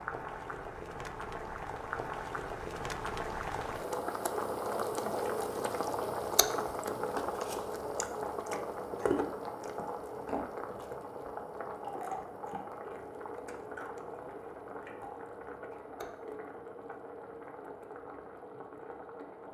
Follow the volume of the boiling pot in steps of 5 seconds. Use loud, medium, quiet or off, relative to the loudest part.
loud, loud, medium, medium.